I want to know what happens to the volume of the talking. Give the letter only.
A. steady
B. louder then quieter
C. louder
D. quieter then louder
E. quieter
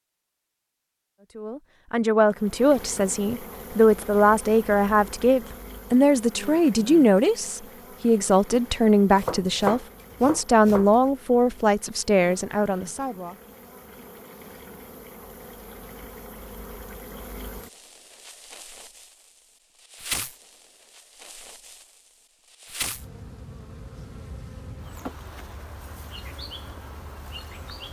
A.